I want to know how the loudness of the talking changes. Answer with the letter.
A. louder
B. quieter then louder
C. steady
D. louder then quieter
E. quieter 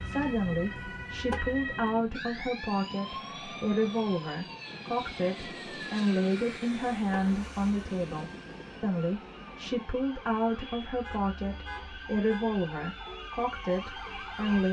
C.